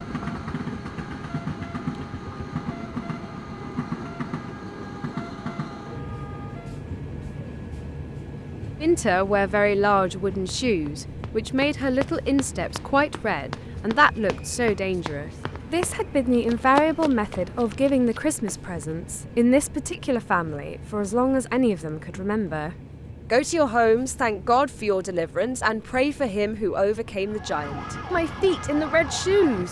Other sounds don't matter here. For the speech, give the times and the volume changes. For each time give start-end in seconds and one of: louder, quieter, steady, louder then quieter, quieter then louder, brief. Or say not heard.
8.8-29.6 steady.